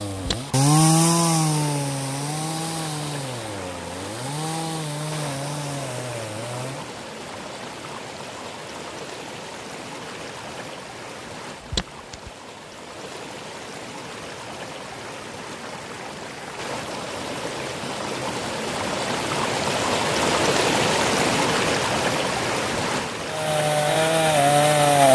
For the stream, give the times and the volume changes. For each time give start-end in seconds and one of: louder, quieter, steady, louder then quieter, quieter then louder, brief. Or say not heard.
0.0-24.9 louder.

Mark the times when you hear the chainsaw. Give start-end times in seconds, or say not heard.
0.0-6.9, 23.2-25.1.